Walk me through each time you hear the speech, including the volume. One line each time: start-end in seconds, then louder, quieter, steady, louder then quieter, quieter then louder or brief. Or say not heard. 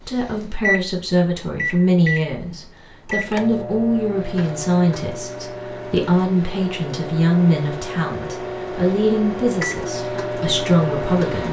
0.1-11.4 steady.